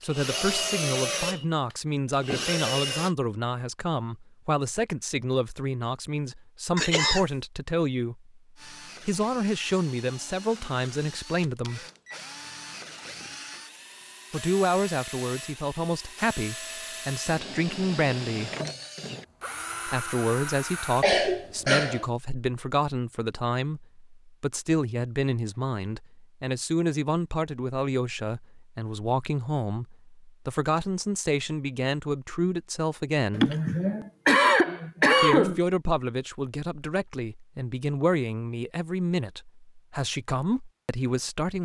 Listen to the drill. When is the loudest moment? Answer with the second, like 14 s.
1 s.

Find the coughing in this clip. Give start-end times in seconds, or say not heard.
6.8-7.2, 21.0-22.1, 33.3-35.6.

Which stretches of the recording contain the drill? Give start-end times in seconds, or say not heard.
0.0-3.1, 8.6-21.1.